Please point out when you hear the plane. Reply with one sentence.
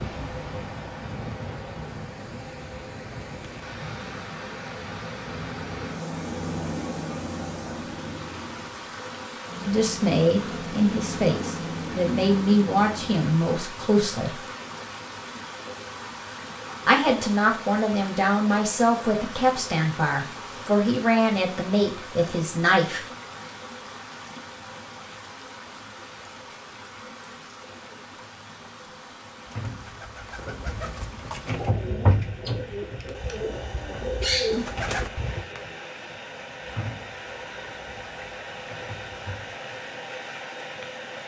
You can hear the plane from 0.0 to 13.3 s.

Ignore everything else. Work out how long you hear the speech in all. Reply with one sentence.
The speech can be heard for 11 seconds in total.